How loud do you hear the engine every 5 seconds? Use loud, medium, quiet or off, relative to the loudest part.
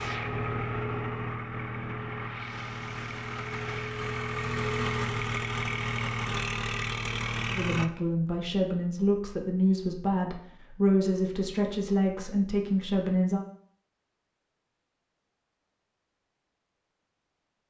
loud, loud, off, off.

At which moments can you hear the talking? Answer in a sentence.
You can hear the talking from 7.5 to 13.4 s.